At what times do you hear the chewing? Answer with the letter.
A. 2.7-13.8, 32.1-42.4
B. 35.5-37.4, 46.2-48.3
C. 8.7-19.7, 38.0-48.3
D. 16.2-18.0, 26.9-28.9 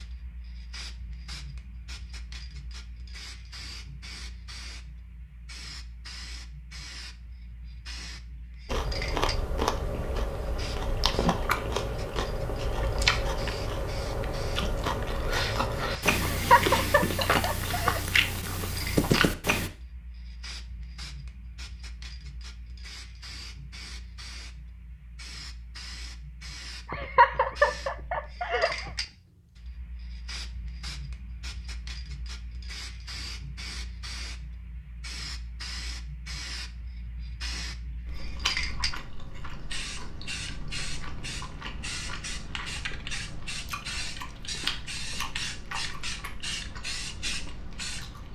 C.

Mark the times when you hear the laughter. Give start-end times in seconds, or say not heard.
16.2-18.0, 26.9-28.9.